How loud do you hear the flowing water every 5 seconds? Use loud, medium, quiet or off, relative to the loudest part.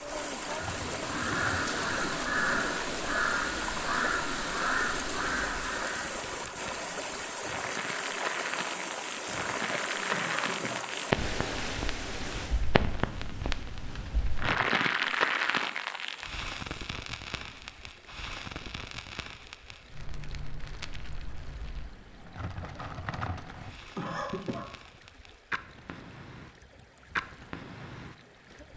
loud, loud, loud, quiet, quiet, quiet.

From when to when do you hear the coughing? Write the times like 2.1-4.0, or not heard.
1.9-2.7, 10.1-10.8, 23.9-24.7.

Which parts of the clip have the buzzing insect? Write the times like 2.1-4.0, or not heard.
not heard.